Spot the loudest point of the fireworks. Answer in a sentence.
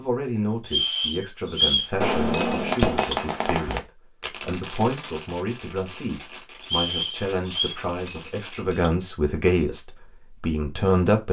The loudest moment of the fireworks is at 3 seconds.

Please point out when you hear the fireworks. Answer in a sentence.
The fireworks can be heard from 2.0 to 8.6 s.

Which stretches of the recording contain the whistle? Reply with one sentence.
You can hear the whistle from 0.7 to 1.9 s and from 6.6 to 7.8 s.